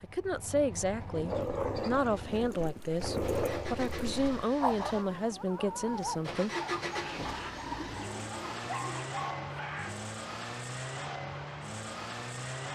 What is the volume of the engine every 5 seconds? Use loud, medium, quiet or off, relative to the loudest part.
medium, loud, loud.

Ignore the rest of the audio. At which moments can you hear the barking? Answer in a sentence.
You can hear the barking from 1.2 to 9.9 s.